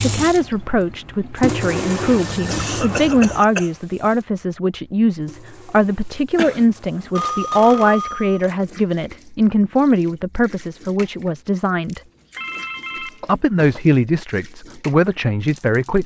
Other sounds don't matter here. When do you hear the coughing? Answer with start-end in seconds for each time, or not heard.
2.5-3.7, 6.3-7.1, 13.2-13.8.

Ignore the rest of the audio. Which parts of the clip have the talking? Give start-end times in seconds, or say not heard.
0.0-12.0, 13.2-16.0.